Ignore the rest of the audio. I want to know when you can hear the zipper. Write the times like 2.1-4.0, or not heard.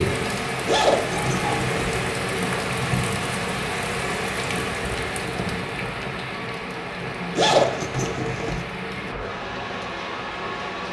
0.7-1.9, 7.3-8.7.